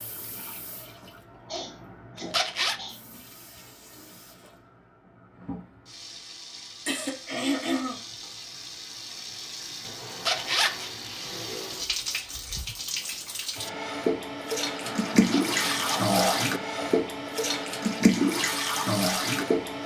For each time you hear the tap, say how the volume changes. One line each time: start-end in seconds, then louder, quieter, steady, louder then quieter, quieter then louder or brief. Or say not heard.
0.0-19.8 louder.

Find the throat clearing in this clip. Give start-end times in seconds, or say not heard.
1.4-3.0, 6.8-8.0, 14.8-16.9.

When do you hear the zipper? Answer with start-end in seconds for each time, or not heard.
2.1-2.8, 10.2-10.9, 15.3-15.9.